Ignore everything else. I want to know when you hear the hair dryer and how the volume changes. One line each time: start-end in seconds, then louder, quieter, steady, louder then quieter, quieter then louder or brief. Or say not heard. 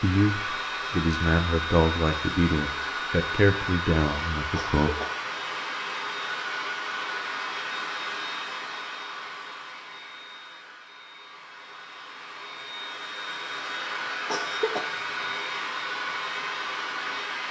0.0-17.4 quieter then louder.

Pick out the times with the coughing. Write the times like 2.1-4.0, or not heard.
4.5-5.2, 14.2-14.9.